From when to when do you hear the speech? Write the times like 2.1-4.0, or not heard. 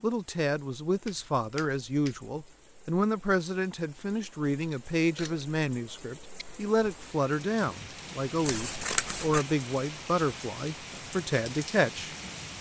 0.0-12.1.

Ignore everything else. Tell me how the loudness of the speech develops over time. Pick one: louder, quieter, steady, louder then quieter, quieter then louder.
steady.